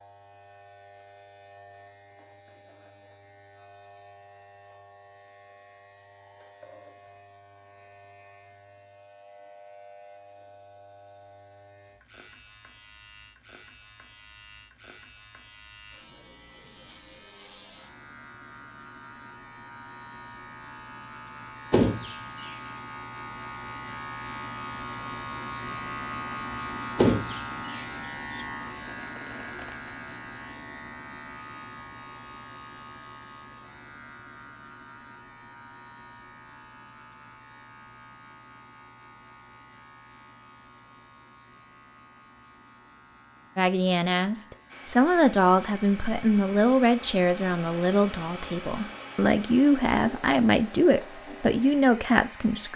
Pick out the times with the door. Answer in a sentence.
The door can be heard from 21.7 to 22.6 s and from 26.9 to 28.4 s.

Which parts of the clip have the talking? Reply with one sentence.
The talking can be heard from 43.5 to 52.7 s.